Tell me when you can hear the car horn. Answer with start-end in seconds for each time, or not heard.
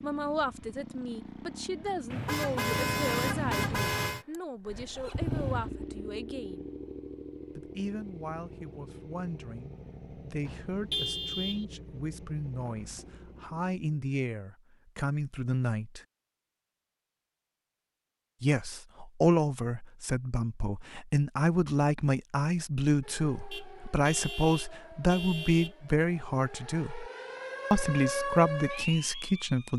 2.1-4.2, 10.4-11.7, 23.5-25.8.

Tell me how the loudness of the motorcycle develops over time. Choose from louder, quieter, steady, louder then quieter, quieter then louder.
louder then quieter.